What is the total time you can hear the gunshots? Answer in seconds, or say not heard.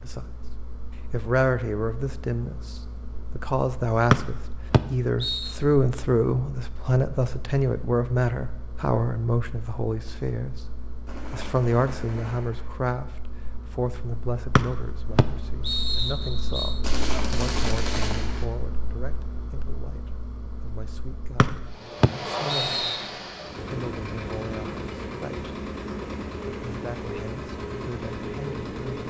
3 s.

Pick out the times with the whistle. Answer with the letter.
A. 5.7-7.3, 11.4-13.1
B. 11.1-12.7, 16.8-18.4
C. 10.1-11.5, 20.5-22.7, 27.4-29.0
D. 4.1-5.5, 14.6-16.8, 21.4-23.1
D.